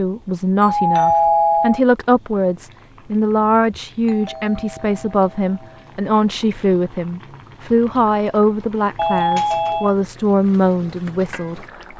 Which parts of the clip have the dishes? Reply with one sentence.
You can't hear the dishes here.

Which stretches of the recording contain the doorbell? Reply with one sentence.
You can hear the doorbell from 0.6 to 1.8 s, from 4.0 to 5.8 s and from 8.9 to 9.9 s.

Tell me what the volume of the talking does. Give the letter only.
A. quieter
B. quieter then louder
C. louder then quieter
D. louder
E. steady
E.